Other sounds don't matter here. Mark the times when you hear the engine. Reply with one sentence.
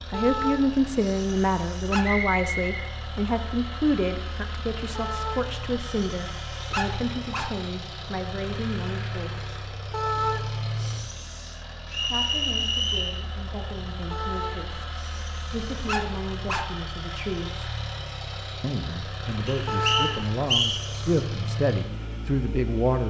You can hear the engine from 0.0 to 23.0 s.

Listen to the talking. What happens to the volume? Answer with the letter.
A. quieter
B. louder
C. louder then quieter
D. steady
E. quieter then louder
E.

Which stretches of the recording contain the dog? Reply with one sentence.
The dog can be heard from 0.1 to 2.0 s, from 5.0 to 7.5 s, from 9.9 to 11.6 s, from 14.1 to 16.6 s and from 19.6 to 21.2 s.